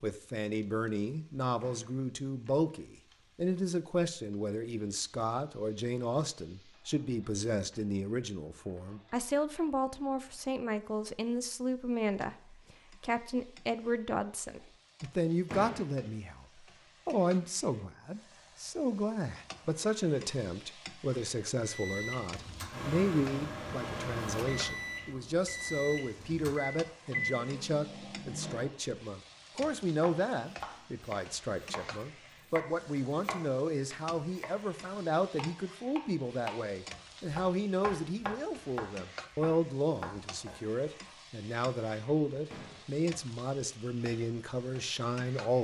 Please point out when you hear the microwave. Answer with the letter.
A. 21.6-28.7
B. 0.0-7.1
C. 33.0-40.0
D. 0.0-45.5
A.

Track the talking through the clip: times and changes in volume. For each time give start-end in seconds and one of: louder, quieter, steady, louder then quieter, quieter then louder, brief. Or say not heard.
0.0-45.5 steady.